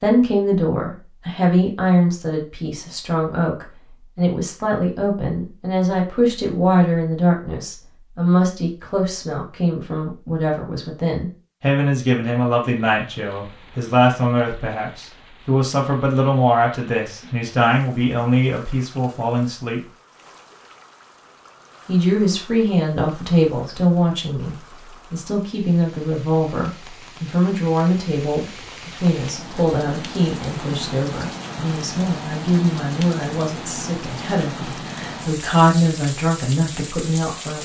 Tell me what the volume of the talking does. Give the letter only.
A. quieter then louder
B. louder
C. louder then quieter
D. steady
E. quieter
D.